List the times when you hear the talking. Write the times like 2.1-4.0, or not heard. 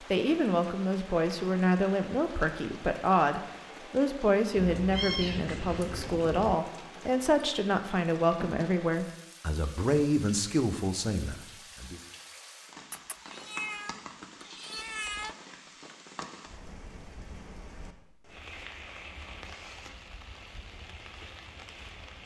0.1-12.0.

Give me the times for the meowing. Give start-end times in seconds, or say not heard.
4.5-6.6, 12.9-15.3.